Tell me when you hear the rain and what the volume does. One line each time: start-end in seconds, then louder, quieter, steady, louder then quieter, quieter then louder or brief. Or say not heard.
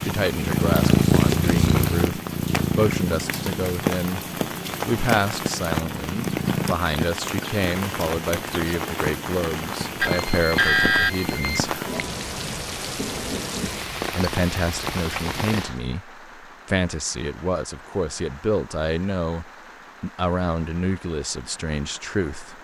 0.0-22.6 quieter.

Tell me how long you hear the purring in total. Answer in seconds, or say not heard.
7 s.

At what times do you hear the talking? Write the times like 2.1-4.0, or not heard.
0.0-4.2, 4.8-11.8, 14.1-22.6.